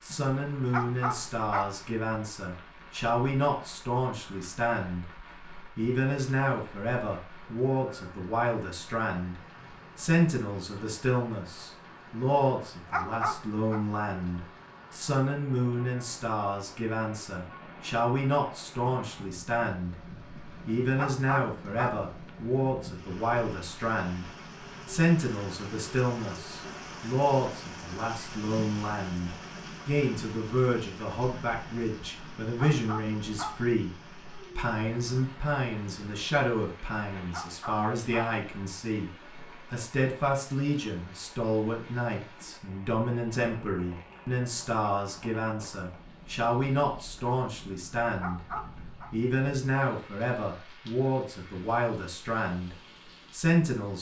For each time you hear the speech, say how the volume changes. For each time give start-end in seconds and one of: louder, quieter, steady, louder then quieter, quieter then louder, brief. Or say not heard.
0.0-53.9 steady.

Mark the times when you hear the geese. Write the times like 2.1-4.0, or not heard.
not heard.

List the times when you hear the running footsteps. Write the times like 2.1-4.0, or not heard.
not heard.